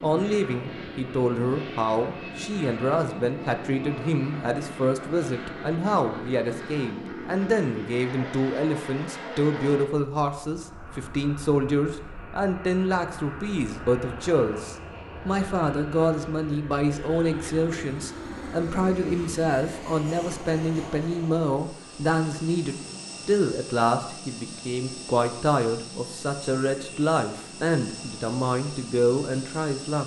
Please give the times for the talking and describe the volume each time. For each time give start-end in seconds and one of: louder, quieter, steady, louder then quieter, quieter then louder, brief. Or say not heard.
0.0-30.0 steady.